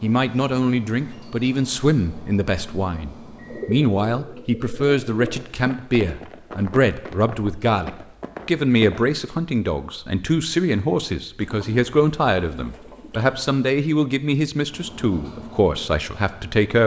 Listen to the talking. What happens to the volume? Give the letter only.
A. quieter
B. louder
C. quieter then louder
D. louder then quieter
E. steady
E.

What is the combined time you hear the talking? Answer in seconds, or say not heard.
17 s.